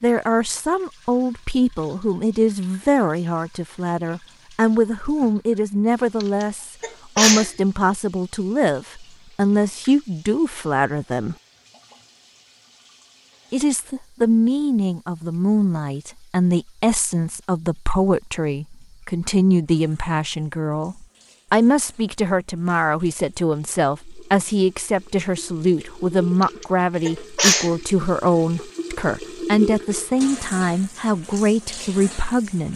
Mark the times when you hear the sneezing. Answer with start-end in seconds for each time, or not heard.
6.2-7.5, 26.4-27.7.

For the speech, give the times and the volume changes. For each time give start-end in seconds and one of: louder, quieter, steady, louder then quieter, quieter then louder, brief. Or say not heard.
0.0-11.3 steady
13.5-32.7 steady.